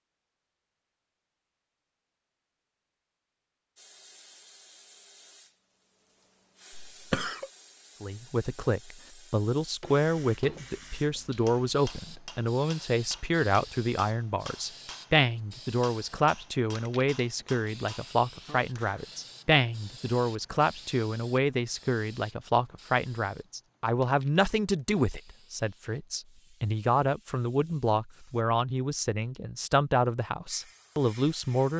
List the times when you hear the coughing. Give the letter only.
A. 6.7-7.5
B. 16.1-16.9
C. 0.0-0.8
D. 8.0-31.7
A.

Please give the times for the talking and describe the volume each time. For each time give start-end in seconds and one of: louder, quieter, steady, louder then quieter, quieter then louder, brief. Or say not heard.
8.0-31.7 steady.